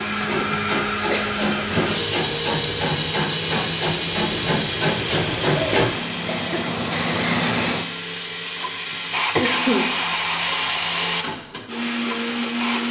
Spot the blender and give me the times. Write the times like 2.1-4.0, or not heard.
0.0-12.8.